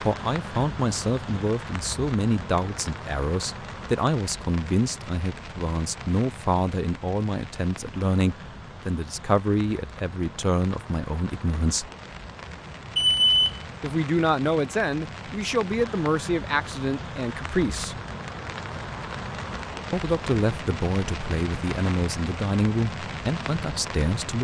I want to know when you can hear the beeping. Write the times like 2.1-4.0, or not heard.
12.9-13.6.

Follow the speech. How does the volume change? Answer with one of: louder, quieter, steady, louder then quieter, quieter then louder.
steady.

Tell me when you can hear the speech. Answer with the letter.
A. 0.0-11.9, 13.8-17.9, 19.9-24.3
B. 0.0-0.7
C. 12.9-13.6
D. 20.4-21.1
A.